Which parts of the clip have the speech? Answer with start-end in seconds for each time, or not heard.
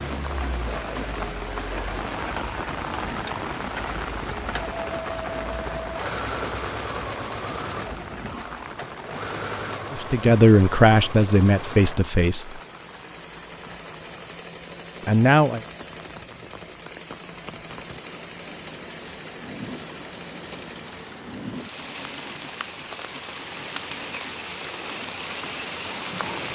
9.9-12.6, 15.1-15.6.